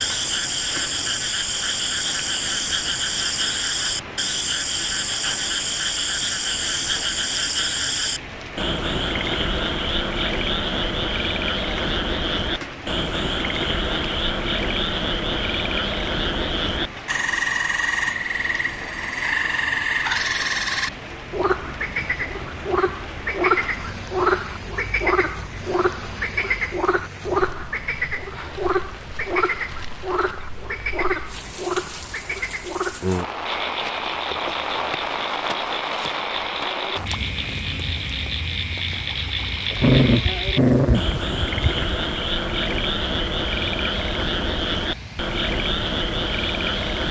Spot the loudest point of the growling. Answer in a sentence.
The volume of the growling peaks at 40 seconds.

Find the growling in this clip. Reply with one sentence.
You can hear the growling from 39.8 to 41.9 s.